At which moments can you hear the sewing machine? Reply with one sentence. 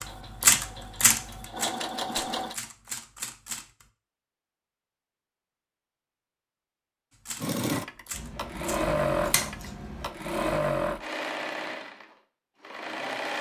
You can hear the sewing machine from 0.0 to 2.5 s and from 7.3 to 13.3 s.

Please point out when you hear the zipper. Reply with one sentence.
The zipper can't be heard in this clip.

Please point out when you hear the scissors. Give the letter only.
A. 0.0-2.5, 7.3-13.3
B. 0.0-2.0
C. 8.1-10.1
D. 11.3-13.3
C.